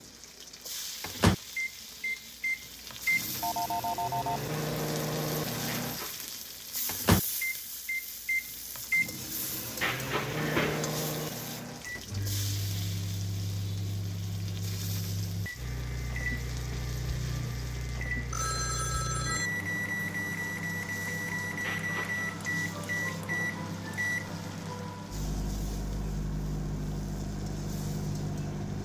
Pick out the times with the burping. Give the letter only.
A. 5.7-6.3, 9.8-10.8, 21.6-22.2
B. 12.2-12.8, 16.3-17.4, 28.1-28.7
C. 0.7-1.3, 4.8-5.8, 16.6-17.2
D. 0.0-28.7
A.